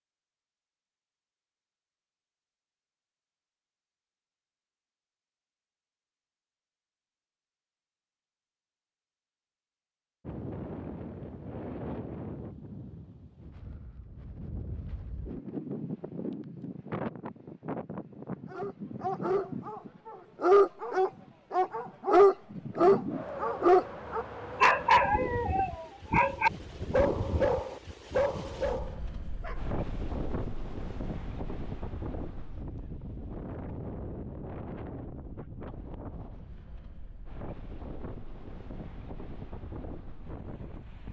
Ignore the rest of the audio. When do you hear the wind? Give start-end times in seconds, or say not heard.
10.2-41.0.